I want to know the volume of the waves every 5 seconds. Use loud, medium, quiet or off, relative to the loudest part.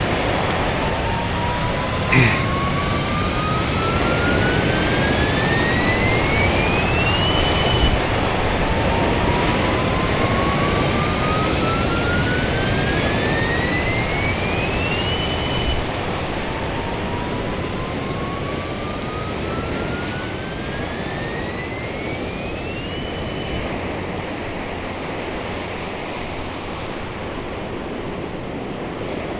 loud, loud, loud, medium, medium, medium.